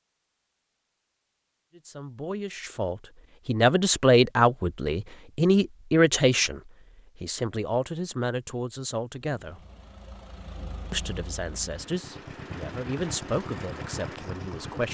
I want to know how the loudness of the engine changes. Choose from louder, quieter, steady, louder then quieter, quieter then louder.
louder.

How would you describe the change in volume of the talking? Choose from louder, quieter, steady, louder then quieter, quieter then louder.
quieter.